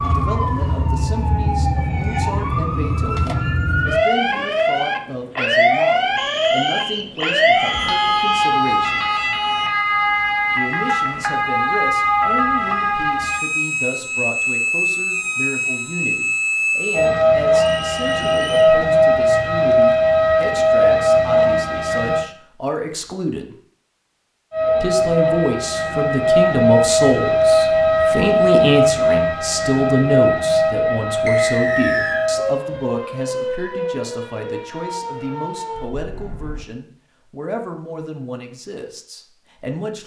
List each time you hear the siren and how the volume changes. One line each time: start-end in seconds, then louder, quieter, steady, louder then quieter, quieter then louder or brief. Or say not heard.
0.0-22.2 louder
24.5-36.6 quieter.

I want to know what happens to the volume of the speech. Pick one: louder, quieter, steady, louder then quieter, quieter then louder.
louder then quieter.